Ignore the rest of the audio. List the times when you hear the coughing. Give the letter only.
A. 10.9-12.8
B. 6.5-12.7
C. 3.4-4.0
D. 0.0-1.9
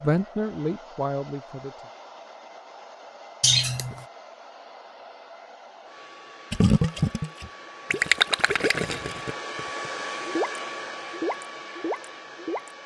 C.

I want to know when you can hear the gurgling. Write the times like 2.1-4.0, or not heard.
6.5-12.7.